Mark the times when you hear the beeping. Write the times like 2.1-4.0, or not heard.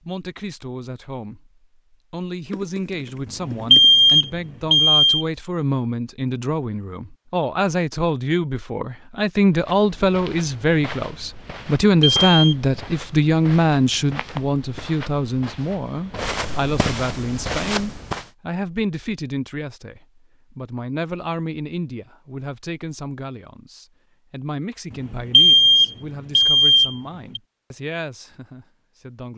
3.5-5.2, 11.8-12.6, 25.1-27.4.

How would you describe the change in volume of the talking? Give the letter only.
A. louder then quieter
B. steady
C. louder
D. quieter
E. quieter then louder
A.